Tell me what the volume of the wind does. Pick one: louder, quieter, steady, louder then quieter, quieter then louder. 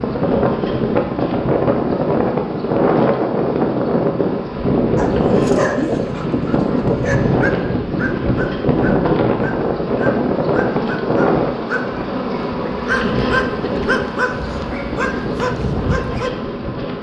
quieter.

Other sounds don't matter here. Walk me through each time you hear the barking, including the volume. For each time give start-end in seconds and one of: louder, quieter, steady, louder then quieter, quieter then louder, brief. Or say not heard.
5.0-16.3 quieter then louder.